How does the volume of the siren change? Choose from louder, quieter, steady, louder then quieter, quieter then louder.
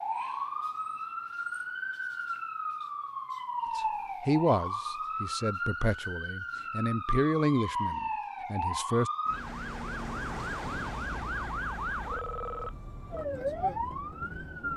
steady.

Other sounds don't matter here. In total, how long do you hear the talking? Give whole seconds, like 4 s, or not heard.
5 s.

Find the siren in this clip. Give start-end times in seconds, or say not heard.
0.0-14.7.